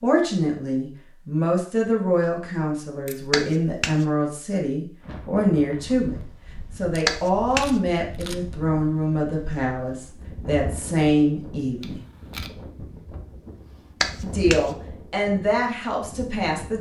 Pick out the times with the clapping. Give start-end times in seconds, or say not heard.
3.3-4.0, 7.0-7.7, 14.0-14.6.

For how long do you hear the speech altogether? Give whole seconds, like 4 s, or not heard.
14 s.